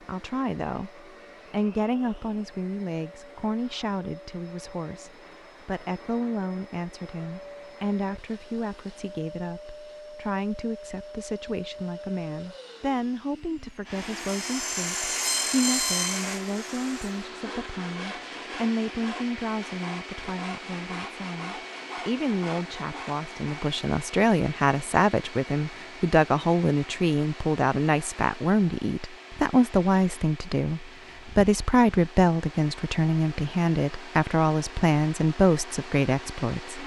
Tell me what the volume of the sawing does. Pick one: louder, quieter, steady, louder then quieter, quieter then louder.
quieter.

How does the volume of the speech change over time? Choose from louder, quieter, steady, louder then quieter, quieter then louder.
louder.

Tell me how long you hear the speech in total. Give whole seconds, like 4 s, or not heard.
37 s.